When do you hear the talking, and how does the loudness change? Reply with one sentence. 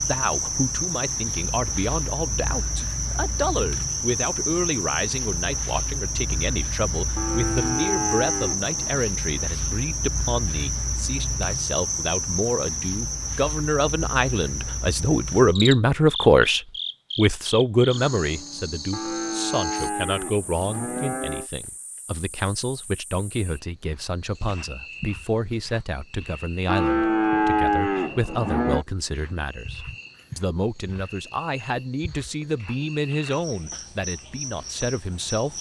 You can hear the talking from 0.1 to 35.5 s, getting louder then quieter.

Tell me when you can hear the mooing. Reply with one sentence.
The mooing can be heard from 7.2 to 9.1 s, from 18.9 to 21.5 s and from 26.6 to 28.9 s.